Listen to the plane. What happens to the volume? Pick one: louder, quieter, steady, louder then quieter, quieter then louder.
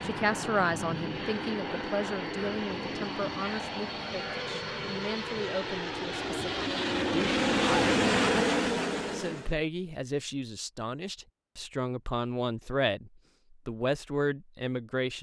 louder.